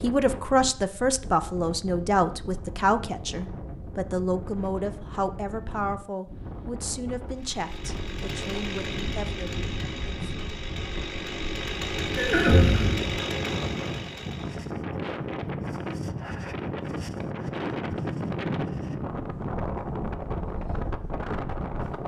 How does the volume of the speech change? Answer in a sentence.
The loudness of the speech goes down.